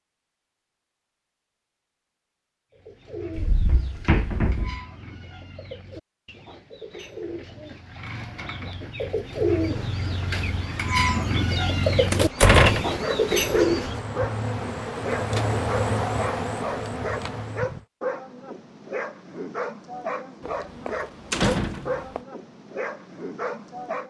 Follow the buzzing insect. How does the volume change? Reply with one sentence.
The loudness of the buzzing insect goes up.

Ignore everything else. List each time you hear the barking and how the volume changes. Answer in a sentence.
The barking can be heard from 12.8 to 24.0 s, at a steady volume.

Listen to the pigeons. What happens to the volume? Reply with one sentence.
The volume of the pigeons goes up.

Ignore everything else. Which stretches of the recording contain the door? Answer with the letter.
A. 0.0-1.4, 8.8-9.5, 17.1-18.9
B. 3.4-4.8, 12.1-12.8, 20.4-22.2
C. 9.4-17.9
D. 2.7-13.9
B.